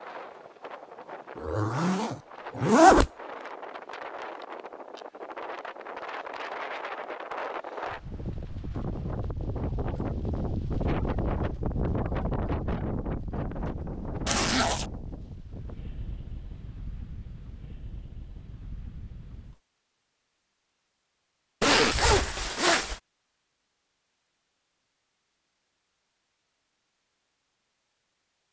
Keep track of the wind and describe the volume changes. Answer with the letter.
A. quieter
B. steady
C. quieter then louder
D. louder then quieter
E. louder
D.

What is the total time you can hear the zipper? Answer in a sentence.
The zipper can be heard for 4 seconds in total.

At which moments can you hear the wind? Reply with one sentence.
The wind can be heard from 0.0 to 19.6 s.